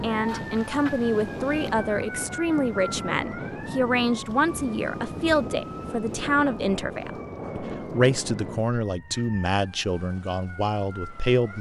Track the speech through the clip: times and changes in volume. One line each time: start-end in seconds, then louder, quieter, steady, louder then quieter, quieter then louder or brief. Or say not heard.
0.0-11.5 steady.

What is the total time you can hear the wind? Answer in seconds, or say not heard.
9 s.